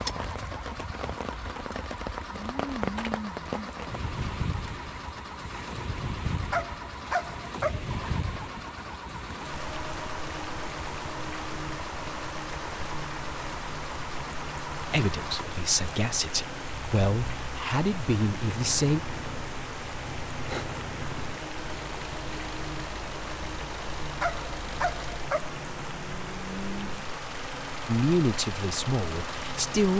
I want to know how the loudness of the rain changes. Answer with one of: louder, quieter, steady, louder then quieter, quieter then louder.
steady.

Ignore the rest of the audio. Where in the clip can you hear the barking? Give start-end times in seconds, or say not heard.
6.5-8.0, 24.2-25.6.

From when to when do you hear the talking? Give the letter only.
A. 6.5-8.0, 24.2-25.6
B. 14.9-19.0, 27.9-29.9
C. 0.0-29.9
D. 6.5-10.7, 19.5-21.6
B.